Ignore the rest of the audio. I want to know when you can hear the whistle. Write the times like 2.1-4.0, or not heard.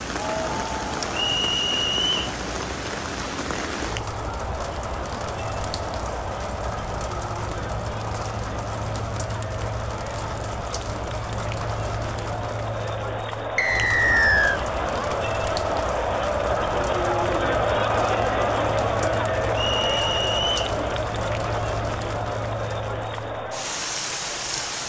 1.1-2.2, 13.6-14.6, 19.5-20.7.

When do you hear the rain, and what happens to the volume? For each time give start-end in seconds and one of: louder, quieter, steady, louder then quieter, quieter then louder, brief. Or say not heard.
0.0-24.8 steady.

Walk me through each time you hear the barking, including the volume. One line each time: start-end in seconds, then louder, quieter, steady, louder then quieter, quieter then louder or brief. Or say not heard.
not heard.